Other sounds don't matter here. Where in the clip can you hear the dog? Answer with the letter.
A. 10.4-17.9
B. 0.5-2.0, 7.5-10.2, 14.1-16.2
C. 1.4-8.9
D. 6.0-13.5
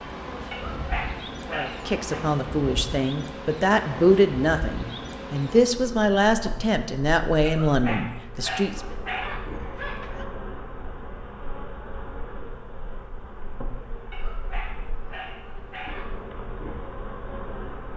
B.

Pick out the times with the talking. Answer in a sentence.
You can hear the talking from 1.4 to 8.9 s.